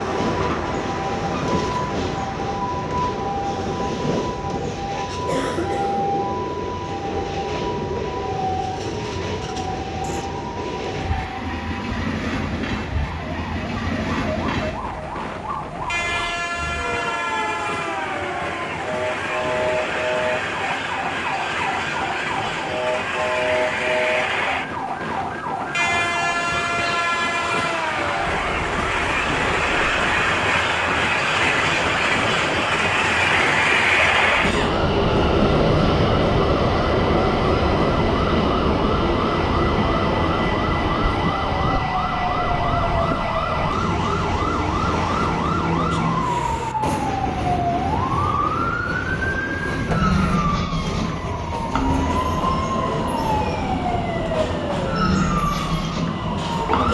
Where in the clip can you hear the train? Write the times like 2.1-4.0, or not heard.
0.0-56.8.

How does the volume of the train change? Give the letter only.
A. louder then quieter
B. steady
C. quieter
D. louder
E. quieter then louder
A.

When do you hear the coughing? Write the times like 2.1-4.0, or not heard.
5.2-6.1, 34.4-34.9.